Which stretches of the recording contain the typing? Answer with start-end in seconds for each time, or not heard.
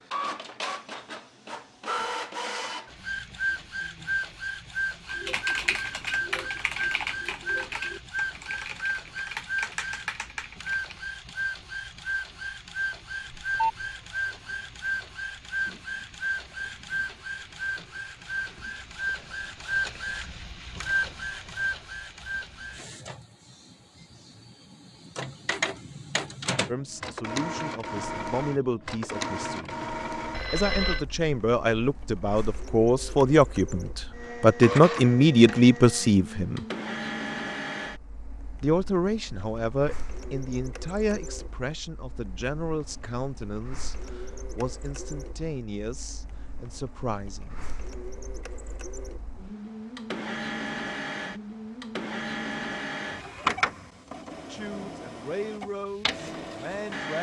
5.0-11.0.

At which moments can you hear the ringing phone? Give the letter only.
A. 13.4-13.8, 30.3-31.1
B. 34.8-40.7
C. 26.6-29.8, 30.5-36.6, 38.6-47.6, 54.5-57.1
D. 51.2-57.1
A.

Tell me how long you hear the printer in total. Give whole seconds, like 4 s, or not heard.
57 s.